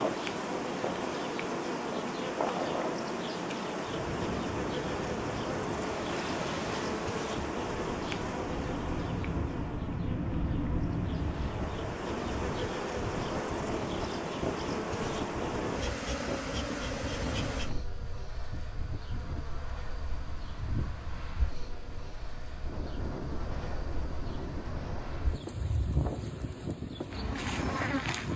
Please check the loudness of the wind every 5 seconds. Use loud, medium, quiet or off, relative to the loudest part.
loud, loud, loud, medium, medium, loud.